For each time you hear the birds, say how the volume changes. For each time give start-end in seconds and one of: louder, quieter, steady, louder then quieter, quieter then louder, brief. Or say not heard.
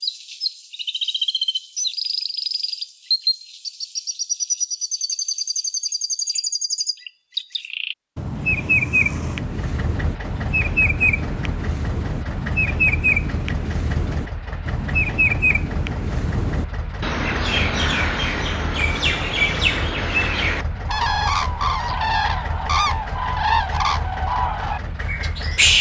0.0-25.7 steady.